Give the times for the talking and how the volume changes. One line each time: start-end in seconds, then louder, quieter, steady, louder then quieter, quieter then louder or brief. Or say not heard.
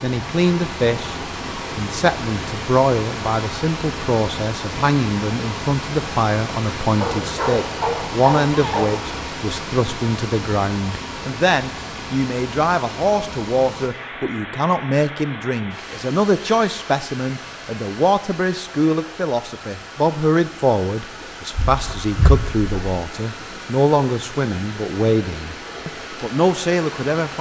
0.0-1.1 brief
1.8-27.3 steady.